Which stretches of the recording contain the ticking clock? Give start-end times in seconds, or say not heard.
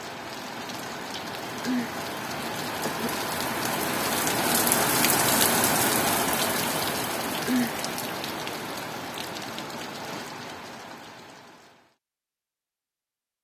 not heard.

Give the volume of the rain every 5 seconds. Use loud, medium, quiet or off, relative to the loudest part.
loud, loud, quiet.